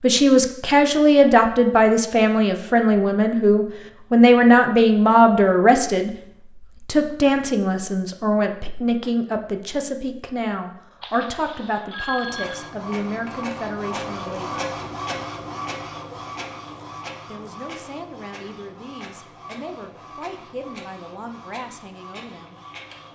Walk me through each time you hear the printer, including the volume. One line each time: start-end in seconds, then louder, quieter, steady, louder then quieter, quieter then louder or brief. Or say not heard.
12.2-23.1 quieter.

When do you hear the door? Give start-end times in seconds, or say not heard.
not heard.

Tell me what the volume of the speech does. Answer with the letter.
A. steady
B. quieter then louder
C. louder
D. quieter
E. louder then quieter
D.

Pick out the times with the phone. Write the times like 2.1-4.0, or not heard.
11.0-12.7.